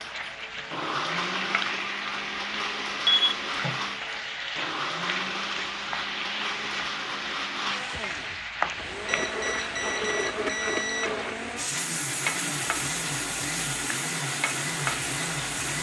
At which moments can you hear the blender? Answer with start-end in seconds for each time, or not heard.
0.0-15.7.